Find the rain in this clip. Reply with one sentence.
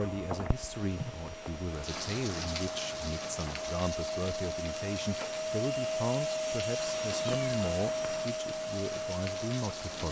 You can hear the rain from 0.0 to 10.0 s.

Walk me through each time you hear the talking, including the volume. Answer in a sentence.
You can hear the talking from 0.0 to 10.0 s, at a steady volume.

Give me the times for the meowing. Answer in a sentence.
You can hear the meowing from 0.3 to 1.1 s and from 6.8 to 8.3 s.